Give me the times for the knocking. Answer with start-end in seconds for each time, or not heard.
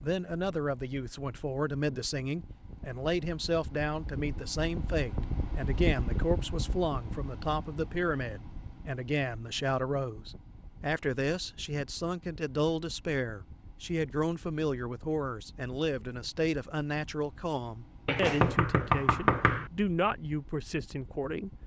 18.1-19.7.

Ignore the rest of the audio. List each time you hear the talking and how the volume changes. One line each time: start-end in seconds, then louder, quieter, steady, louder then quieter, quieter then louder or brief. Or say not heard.
0.0-21.5 steady.